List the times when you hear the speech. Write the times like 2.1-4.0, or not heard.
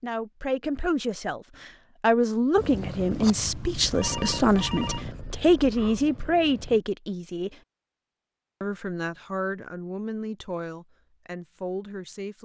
0.0-7.5, 8.6-12.3.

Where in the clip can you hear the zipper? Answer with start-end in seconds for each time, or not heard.
not heard.